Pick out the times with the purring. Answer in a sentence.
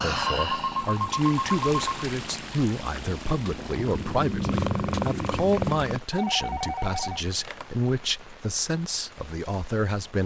You can hear the purring from 0.0 to 6.0 s.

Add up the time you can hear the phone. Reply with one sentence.
You can hear the phone for 3 seconds altogether.